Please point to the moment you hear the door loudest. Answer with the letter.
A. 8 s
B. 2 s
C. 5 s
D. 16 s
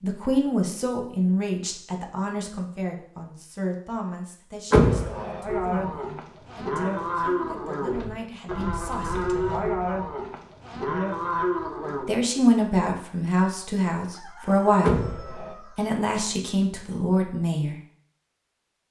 C.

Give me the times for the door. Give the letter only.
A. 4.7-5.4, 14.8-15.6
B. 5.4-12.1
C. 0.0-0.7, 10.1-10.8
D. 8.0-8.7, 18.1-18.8
A.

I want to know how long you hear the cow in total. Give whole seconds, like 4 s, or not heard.
7 s.